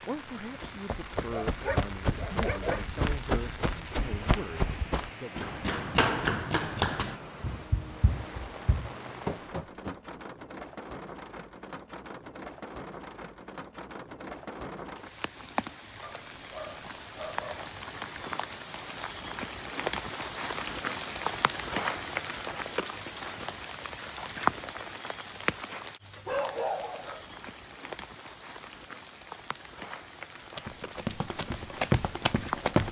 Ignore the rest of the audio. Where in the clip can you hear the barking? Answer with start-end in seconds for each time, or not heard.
1.2-2.9, 16.0-17.6, 26.2-27.2.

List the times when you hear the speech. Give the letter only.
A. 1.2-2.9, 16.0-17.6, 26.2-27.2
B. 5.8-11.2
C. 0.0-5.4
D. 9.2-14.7
C.